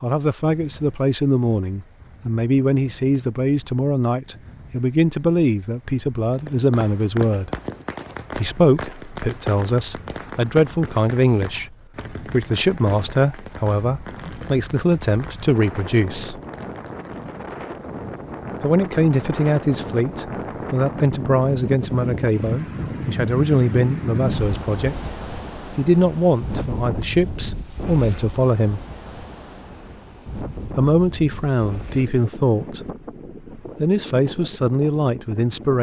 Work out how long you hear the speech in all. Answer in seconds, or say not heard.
30 s.